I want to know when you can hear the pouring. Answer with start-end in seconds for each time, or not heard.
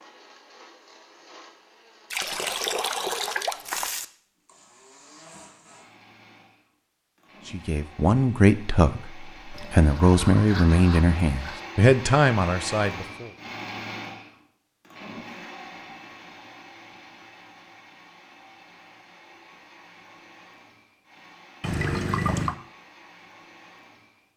2.1-4.0, 9.5-11.7, 21.6-22.6.